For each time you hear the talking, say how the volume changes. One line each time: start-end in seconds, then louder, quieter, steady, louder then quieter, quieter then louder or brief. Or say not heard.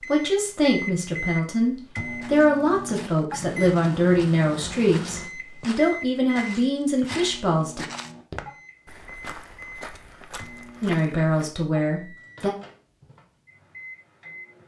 0.1-7.8 steady
10.8-12.5 brief.